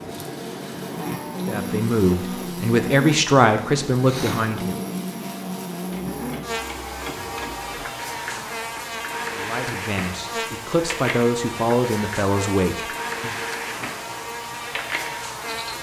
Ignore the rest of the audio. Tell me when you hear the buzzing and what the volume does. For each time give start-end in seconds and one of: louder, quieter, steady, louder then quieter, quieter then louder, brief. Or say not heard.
0.0-15.7 steady.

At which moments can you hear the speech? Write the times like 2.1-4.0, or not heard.
1.4-4.8, 9.3-13.4.